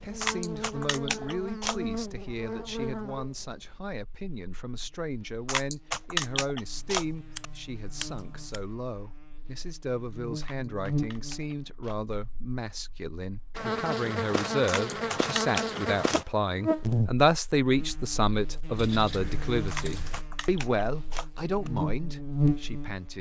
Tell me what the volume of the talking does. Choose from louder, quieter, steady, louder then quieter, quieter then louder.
louder.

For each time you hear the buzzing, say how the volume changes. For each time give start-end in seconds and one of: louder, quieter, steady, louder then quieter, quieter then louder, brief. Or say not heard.
0.0-23.1 quieter then louder.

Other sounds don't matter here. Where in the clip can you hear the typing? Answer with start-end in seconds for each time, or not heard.
0.2-1.8, 5.5-7.5, 10.4-12.0, 14.7-16.2, 19.7-21.7.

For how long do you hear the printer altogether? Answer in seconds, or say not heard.
not heard.